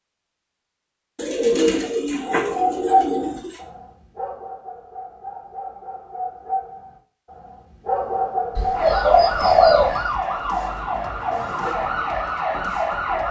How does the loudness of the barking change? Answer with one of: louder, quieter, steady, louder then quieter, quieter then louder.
quieter then louder.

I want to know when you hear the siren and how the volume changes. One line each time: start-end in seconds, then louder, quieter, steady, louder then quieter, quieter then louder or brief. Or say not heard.
8.7-13.2 steady.